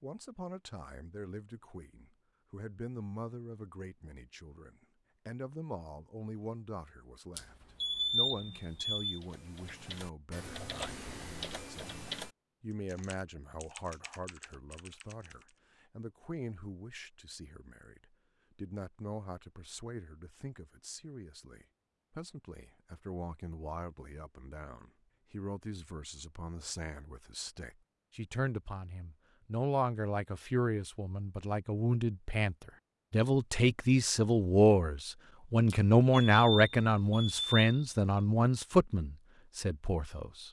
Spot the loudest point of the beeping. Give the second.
8 s.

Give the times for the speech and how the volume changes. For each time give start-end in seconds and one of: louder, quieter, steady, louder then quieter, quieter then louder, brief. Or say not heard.
0.0-40.4 louder.